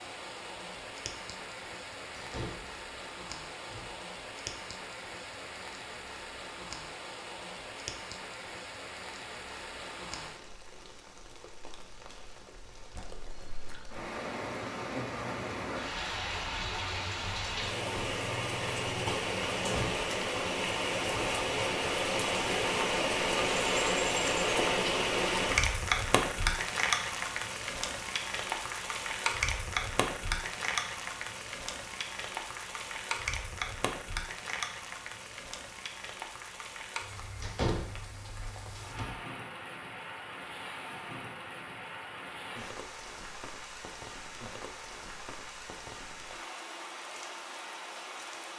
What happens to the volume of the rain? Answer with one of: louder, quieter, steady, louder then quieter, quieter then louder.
louder then quieter.